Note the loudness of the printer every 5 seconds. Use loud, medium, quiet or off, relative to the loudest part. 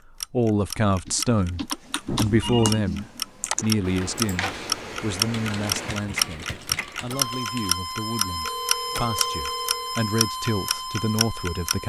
medium, loud, loud.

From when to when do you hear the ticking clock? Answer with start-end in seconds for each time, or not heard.
0.2-11.8.